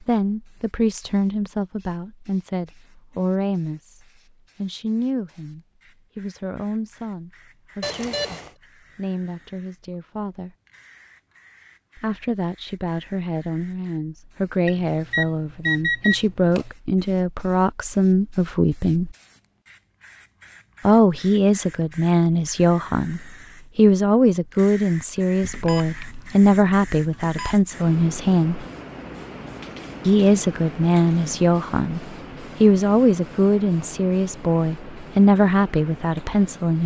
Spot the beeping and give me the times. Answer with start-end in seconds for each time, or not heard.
7.8-8.5, 14.7-16.7, 25.4-27.6.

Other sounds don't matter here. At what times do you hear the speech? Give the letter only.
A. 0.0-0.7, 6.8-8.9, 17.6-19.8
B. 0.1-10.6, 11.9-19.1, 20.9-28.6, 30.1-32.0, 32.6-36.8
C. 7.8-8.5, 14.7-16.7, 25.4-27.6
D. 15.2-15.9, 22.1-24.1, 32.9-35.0
B.